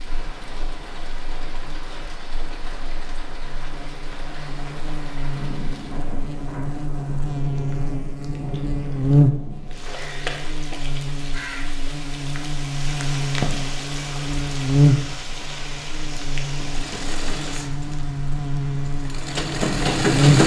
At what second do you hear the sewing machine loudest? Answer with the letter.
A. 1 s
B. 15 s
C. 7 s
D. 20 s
D.